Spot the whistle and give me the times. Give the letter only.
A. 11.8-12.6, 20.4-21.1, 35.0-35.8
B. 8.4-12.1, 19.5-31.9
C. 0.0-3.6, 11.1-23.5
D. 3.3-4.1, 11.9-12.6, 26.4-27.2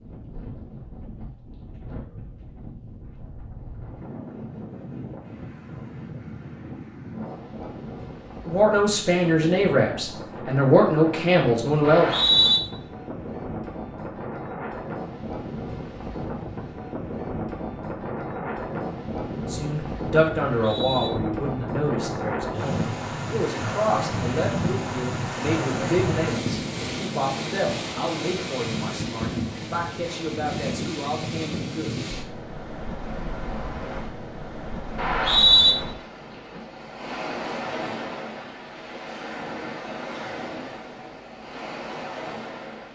A.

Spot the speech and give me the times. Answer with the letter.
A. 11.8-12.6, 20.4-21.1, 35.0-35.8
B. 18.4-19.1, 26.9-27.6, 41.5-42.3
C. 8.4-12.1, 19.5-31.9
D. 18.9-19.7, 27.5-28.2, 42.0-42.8
C.